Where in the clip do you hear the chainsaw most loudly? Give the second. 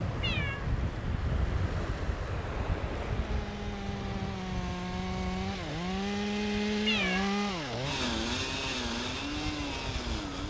7 s.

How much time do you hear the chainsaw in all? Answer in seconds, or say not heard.
7 s.